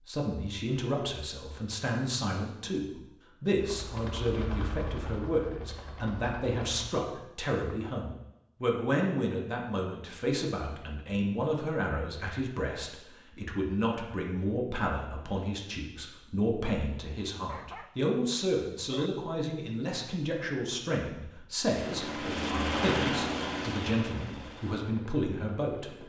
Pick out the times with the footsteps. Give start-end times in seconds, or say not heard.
not heard.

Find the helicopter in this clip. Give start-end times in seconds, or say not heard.
3.5-7.0, 21.6-26.0.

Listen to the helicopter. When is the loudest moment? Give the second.
23 s.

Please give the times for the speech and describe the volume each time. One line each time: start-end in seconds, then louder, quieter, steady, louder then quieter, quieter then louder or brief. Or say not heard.
0.1-26.0 steady.